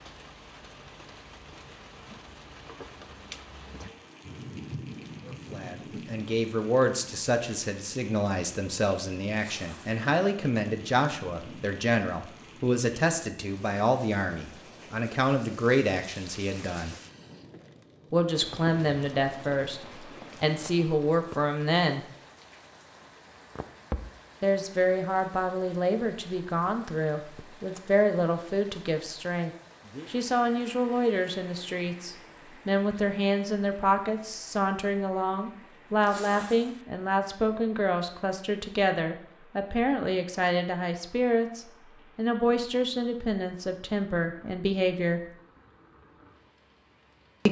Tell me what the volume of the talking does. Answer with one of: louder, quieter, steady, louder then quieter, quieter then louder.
steady.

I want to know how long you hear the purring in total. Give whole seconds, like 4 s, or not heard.
not heard.